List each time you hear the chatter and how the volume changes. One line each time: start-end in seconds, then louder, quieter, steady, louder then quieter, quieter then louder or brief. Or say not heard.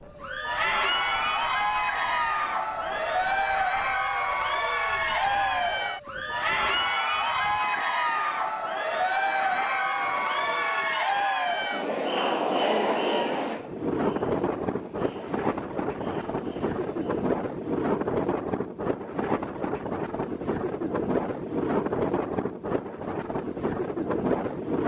0.1-17.2 quieter.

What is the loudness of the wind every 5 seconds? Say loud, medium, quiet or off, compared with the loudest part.
quiet, quiet, loud, loud, loud.